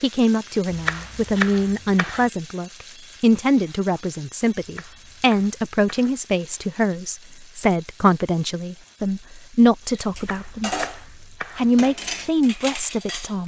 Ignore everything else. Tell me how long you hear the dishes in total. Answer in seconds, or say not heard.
3 s.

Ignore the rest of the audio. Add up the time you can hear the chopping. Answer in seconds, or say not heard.
5 s.